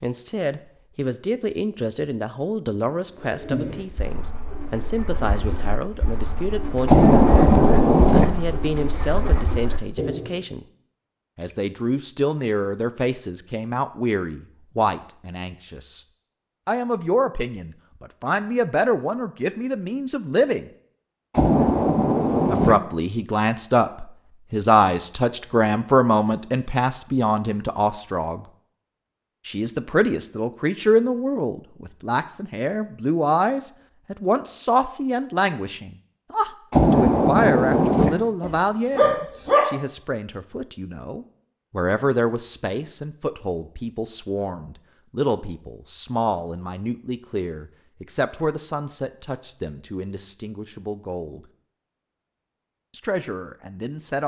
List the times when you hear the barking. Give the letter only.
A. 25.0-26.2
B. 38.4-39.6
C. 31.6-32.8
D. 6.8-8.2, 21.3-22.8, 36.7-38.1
B.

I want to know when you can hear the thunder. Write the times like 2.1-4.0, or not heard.
6.8-8.2, 21.3-22.8, 36.7-38.1.